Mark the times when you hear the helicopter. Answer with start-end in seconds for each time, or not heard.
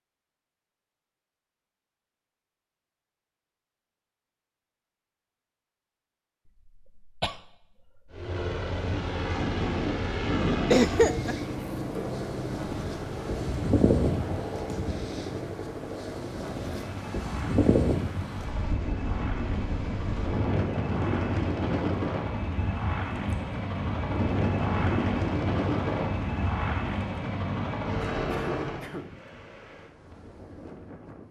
8.1-28.9.